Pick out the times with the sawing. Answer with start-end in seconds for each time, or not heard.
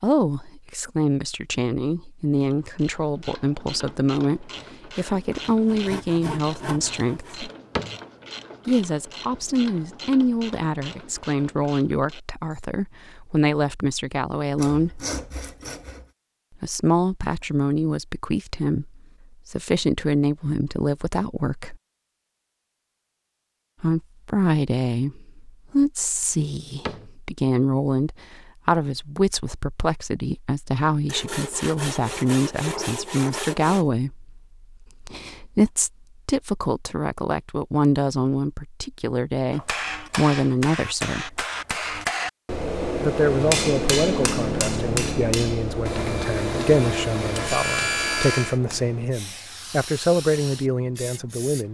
5.0-7.4, 14.6-16.1, 31.1-33.9, 45.9-48.6.